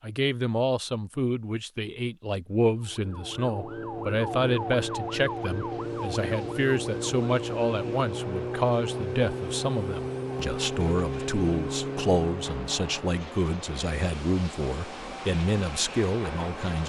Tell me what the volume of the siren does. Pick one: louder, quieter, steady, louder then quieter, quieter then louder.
steady.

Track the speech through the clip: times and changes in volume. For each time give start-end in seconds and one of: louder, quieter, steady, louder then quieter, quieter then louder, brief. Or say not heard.
0.0-16.8 steady.